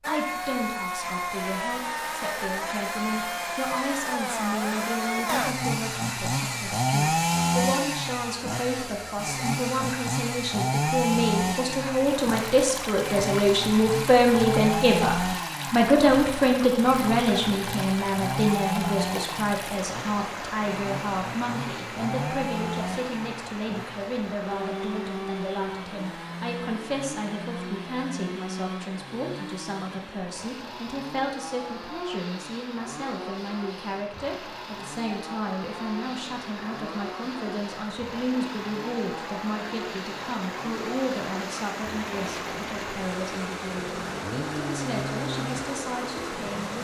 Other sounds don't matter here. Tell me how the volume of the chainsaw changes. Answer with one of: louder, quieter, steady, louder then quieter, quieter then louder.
quieter.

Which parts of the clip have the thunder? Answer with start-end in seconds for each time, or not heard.
not heard.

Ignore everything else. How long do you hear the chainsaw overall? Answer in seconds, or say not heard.
47 s.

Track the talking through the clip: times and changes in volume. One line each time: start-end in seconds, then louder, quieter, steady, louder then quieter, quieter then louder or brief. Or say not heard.
0.1-46.7 louder then quieter.